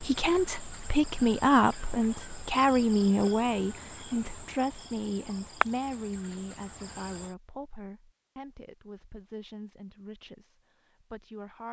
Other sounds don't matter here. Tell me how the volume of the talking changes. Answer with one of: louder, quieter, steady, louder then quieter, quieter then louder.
quieter.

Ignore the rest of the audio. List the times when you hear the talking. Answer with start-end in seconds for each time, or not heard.
0.0-11.6.